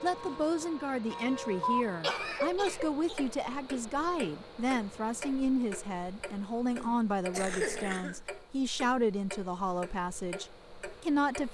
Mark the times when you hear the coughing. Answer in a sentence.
The coughing can be heard from 1.8 to 3.8 s and from 6.7 to 8.2 s.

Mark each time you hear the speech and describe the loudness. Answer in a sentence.
The speech can be heard from 0.0 to 11.4 s, at a steady volume.